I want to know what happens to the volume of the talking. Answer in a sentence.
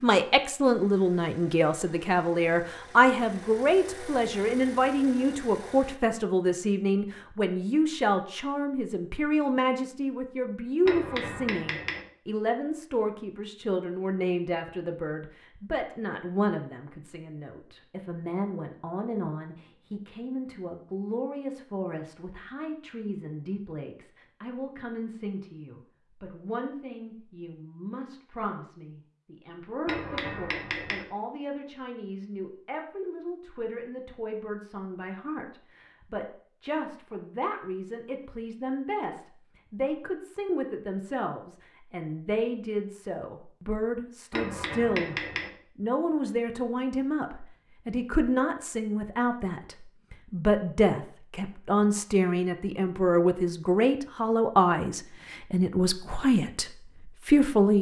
The loudness of the talking goes down, then up.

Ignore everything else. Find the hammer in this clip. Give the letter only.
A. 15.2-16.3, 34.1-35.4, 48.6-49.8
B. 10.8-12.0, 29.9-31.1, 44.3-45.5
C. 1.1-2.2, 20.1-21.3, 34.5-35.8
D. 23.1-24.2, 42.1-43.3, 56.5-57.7
B.